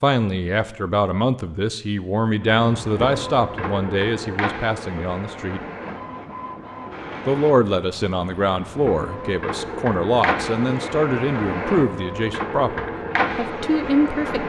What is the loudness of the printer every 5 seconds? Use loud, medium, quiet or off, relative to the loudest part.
loud, medium, loud.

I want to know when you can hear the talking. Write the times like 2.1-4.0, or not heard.
0.0-5.6, 7.2-14.4.